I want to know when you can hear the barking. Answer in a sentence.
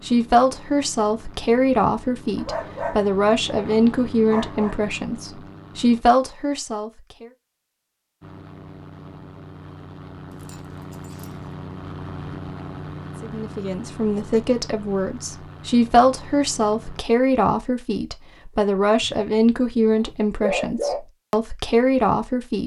You can hear the barking from 2.4 to 4.8 s, from 10.3 to 11.3 s and from 19.0 to 21.0 s.